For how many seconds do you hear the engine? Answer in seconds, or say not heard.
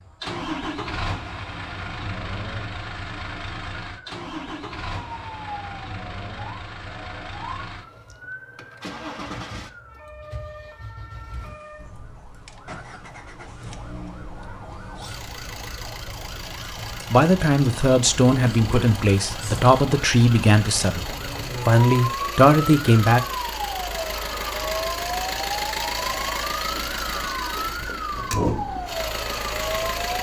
30 s.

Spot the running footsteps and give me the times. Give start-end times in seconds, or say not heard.
not heard.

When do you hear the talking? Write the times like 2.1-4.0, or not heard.
17.1-23.2.